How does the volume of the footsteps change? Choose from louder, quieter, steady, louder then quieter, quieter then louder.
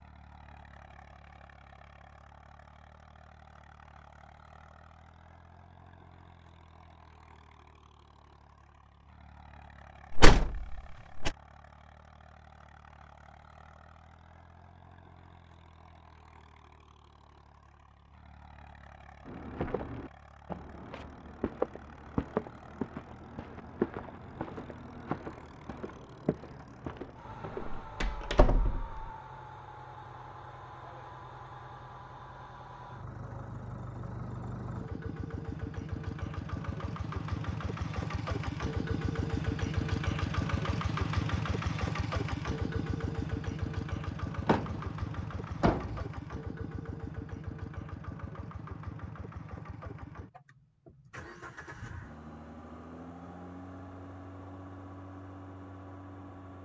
louder then quieter.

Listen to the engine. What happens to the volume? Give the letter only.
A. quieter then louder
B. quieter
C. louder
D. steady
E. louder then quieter
E.